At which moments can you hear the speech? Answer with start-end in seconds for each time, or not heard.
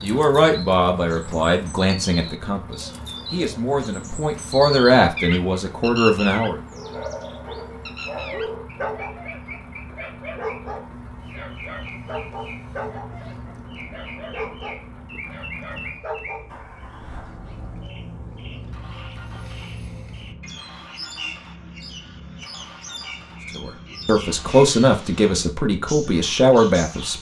0.0-6.6, 23.6-27.1.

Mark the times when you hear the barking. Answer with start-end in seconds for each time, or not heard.
6.8-16.4.